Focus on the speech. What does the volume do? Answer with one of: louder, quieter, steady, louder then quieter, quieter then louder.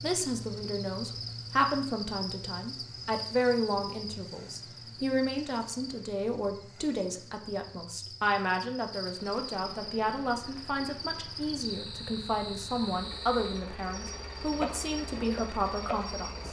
steady.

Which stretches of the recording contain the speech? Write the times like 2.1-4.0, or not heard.
0.0-16.4.